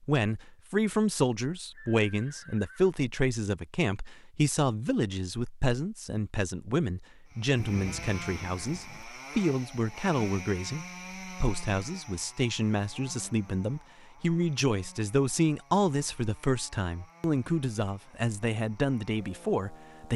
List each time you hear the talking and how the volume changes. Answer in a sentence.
You can hear the talking from 0.0 to 20.1 s, at a steady volume.